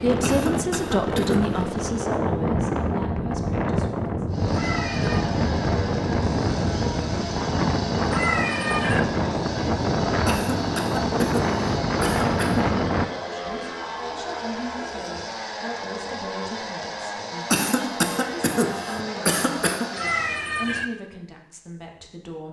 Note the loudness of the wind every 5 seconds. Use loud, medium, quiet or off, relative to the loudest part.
loud, loud, loud, off, off.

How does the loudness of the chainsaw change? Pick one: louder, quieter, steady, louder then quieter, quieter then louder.
steady.